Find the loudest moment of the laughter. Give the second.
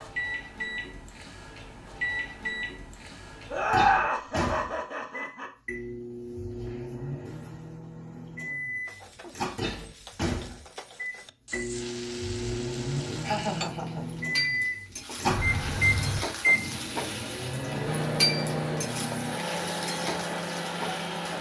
4 s.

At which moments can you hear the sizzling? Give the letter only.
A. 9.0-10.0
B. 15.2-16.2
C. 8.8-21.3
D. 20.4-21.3
C.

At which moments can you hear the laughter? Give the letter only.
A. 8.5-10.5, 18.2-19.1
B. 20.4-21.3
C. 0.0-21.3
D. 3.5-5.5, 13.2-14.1
D.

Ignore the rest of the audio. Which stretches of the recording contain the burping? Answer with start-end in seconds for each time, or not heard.
15.2-16.2.